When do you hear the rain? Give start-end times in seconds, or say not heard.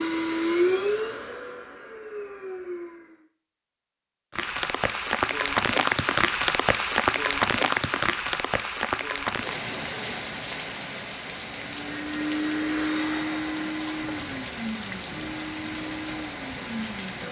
4.3-17.2.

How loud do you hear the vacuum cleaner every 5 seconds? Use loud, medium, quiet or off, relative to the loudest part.
loud, off, loud, medium.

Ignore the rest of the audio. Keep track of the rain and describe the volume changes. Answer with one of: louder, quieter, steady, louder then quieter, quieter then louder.
quieter.